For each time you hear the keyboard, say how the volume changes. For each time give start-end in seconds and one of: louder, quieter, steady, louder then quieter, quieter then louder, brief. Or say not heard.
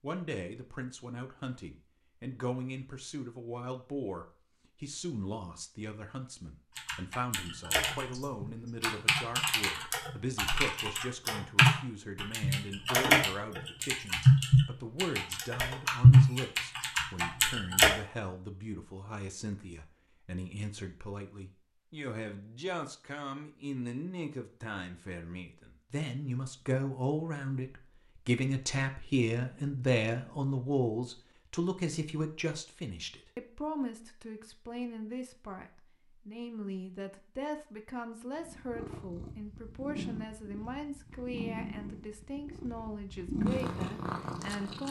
6.8-17.9 louder.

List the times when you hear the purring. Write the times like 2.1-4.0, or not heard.
38.4-44.8.